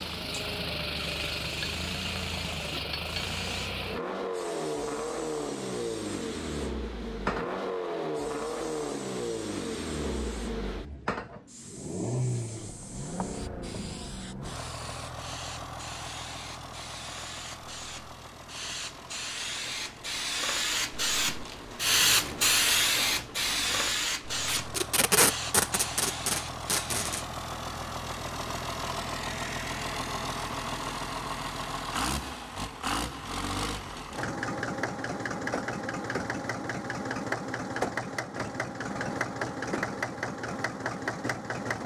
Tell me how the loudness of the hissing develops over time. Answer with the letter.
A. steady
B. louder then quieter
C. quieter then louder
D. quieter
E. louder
E.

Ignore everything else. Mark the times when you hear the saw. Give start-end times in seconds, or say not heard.
not heard.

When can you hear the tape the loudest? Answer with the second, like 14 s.
25 s.